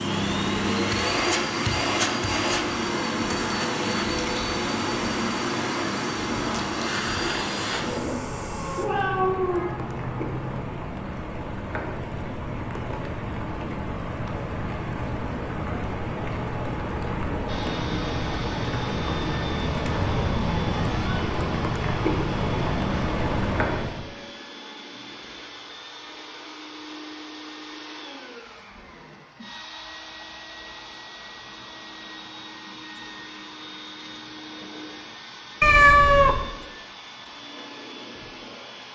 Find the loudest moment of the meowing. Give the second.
36 s.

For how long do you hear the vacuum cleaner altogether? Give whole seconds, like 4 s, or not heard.
30 s.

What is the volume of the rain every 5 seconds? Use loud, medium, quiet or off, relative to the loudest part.
medium, medium, medium, loud, loud, off, off, off.